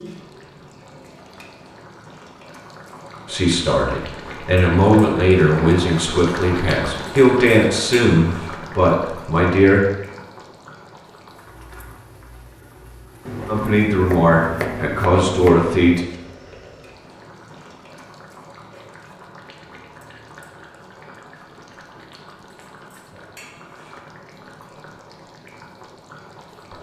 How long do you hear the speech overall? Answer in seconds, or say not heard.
9 s.